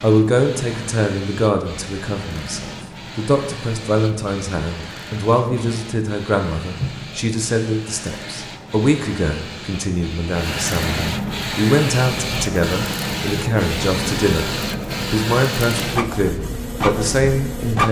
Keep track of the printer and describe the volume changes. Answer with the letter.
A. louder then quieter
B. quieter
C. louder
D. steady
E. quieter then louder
C.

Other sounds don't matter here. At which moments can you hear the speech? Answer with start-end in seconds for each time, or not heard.
0.0-17.8.